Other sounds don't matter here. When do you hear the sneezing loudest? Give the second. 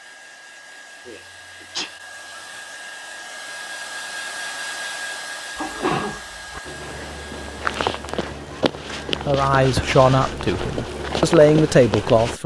6 s.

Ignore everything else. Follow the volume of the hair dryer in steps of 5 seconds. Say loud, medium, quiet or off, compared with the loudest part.
loud, loud, off.